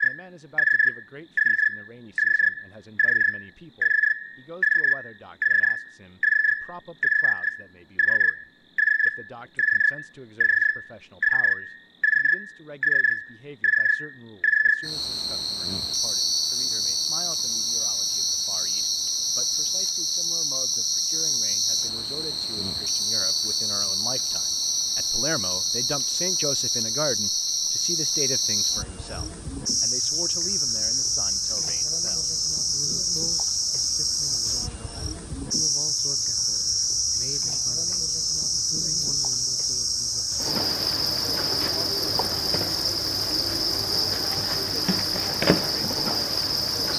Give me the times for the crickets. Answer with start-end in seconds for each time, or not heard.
0.0-46.9.